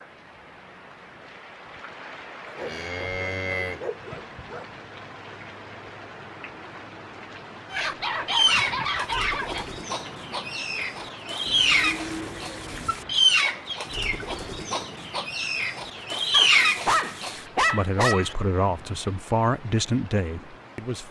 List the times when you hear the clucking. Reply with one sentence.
The clucking can be heard from 7.7 to 17.4 s.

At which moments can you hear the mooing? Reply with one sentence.
You can hear the mooing from 2.5 to 4.2 s and from 11.4 to 13.1 s.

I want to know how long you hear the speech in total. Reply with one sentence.
The speech can be heard for 3 seconds in total.